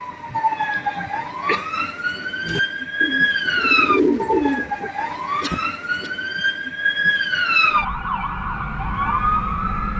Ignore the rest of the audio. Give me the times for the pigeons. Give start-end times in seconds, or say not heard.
2.4-4.9.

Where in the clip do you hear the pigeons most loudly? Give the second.
4 s.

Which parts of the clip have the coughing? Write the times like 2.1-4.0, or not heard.
0.2-1.7, 5.4-6.1.